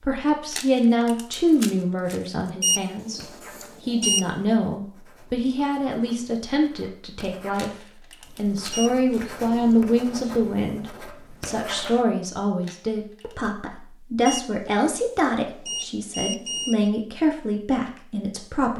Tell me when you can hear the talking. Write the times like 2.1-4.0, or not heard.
0.0-18.7.